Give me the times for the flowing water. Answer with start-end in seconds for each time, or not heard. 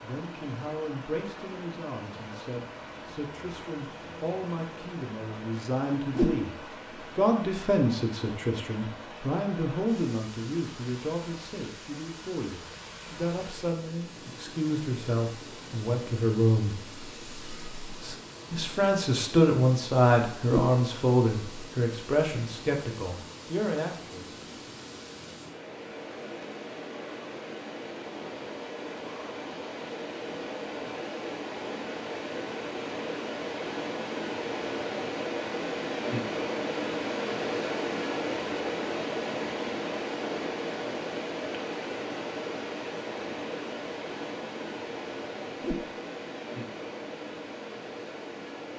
0.0-48.7.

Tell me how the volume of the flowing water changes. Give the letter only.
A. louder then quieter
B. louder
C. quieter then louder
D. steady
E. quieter
B.